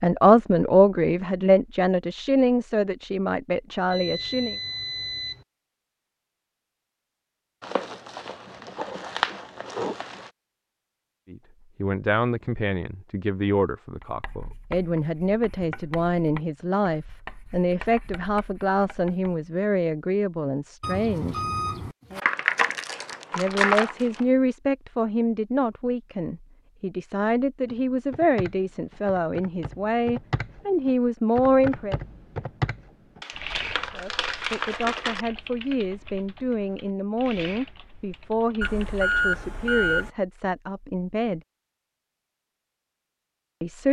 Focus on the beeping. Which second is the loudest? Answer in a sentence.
The loudest moment of the beeping is at 39 seconds.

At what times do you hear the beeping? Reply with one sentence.
You can hear the beeping from 3.9 to 5.5 s, from 20.8 to 22.2 s and from 38.6 to 40.1 s.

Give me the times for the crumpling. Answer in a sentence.
You can hear the crumpling from 7.6 to 10.3 s, from 22.2 to 24.2 s and from 33.2 to 35.2 s.